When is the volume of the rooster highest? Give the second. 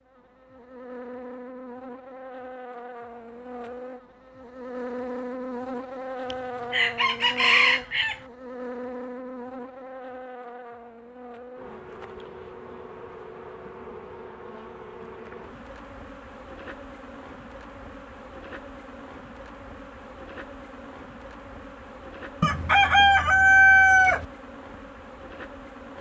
24 s.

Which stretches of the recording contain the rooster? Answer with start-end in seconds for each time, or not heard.
6.3-8.2, 22.4-24.2.